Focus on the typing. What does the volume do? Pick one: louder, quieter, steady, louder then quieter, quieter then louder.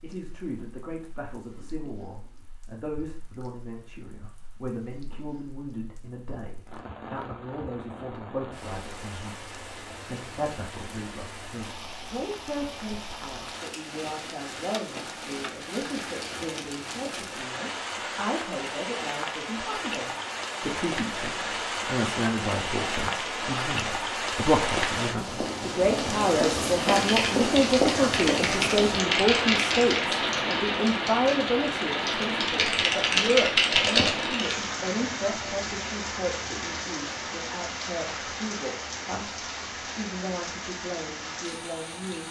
quieter then louder.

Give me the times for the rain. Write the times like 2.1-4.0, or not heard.
0.0-42.2.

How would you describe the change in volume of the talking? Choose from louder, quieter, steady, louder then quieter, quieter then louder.
louder then quieter.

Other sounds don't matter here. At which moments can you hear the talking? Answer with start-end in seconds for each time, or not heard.
0.0-42.2.